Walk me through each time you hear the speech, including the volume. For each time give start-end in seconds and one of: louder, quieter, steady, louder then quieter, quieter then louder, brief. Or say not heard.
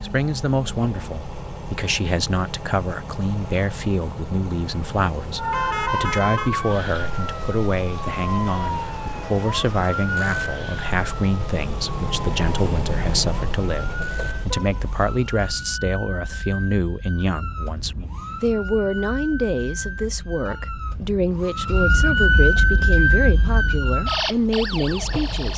0.0-25.5 steady.